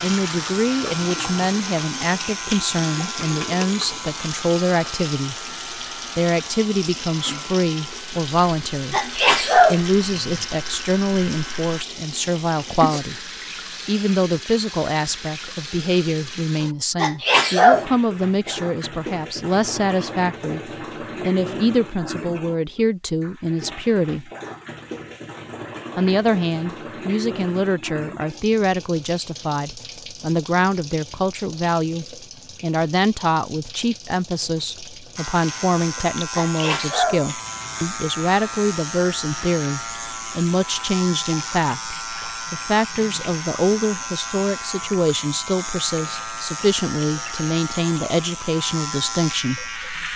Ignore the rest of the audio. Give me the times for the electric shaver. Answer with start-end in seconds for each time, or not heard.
0.0-11.8, 35.1-50.1.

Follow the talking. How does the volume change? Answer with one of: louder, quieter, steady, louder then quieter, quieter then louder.
steady.